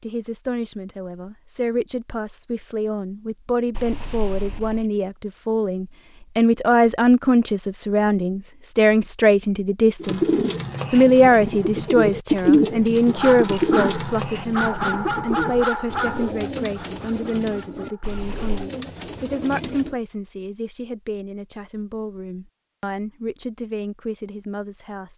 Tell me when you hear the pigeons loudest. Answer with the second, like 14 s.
12 s.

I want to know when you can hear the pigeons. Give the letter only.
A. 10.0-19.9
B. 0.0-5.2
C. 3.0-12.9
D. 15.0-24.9
A.